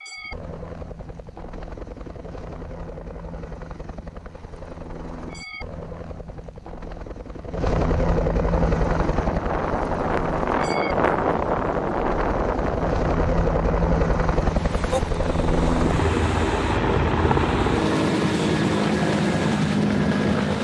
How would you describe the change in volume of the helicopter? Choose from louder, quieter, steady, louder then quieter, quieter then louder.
louder.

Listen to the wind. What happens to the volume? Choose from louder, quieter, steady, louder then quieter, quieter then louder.
quieter.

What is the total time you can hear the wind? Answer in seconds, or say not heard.
12 s.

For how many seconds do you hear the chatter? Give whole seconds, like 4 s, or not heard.
not heard.